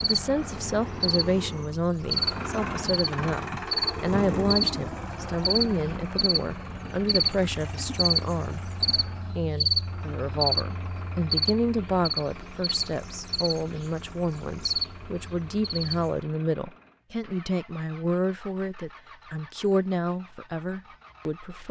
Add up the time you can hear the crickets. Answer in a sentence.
The crickets can be heard for 16 seconds in total.